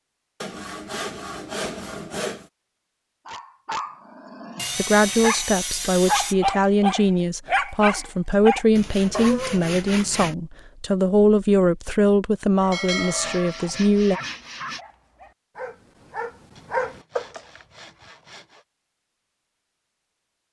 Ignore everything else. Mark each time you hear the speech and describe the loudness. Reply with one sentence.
The speech can be heard from 4.8 to 14.2 s, at a steady volume.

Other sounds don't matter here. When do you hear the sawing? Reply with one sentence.
You can hear the sawing from 0.4 to 2.5 s, from 4.5 to 6.3 s, from 8.7 to 10.3 s, from 12.7 to 14.8 s and from 16.6 to 18.6 s.